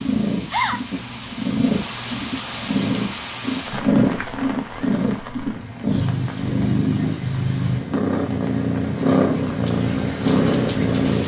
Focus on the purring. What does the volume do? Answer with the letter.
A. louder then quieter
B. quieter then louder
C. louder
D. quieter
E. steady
C.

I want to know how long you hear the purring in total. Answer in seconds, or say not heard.
11 s.